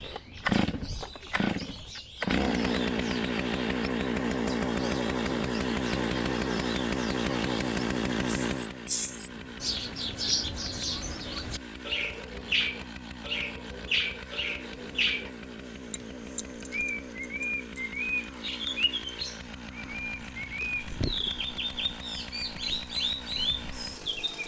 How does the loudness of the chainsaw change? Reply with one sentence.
The volume of the chainsaw goes down.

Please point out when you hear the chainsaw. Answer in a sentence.
You can hear the chainsaw from 0.0 to 24.4 s.